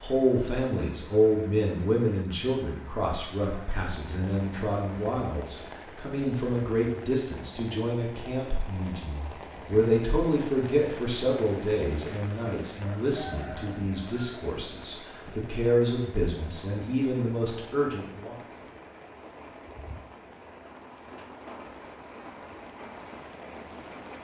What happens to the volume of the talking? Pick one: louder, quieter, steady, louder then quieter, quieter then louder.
steady.